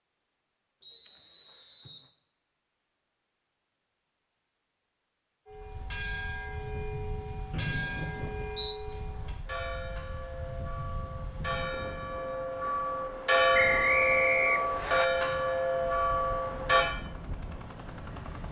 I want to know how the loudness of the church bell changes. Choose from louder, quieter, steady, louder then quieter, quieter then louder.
louder.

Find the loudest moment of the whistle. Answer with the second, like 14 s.
14 s.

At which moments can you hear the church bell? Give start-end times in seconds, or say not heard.
5.5-16.9.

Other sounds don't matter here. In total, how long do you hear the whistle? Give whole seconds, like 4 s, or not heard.
4 s.